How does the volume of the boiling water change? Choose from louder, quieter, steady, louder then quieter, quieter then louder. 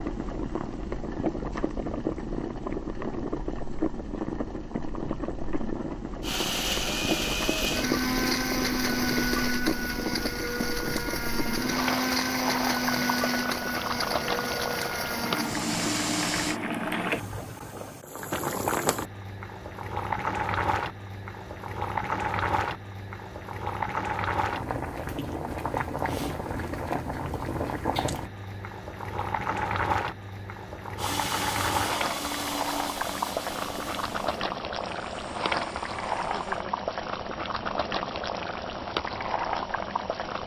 steady.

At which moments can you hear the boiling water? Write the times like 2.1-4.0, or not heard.
0.0-40.4.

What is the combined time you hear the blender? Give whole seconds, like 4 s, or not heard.
16 s.